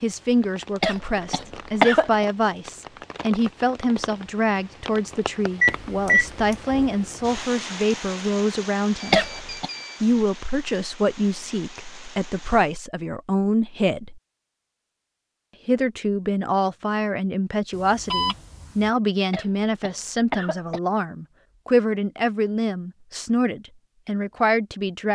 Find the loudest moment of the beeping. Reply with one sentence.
The volume of the beeping peaks at 6 seconds.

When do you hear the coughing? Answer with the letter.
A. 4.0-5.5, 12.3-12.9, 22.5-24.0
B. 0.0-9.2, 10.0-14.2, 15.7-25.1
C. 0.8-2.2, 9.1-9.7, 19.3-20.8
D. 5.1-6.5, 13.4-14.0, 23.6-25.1
C.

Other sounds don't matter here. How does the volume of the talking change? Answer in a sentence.
The loudness of the talking stays about the same.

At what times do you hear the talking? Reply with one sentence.
The talking can be heard from 0.0 to 9.2 s, from 10.0 to 14.2 s and from 15.7 to 25.1 s.